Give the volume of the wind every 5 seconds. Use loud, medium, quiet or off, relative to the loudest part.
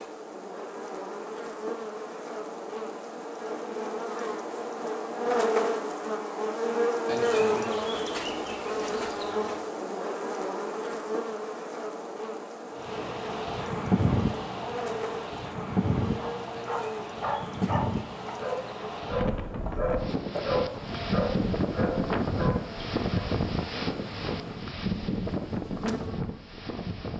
off, off, loud, loud, loud, loud.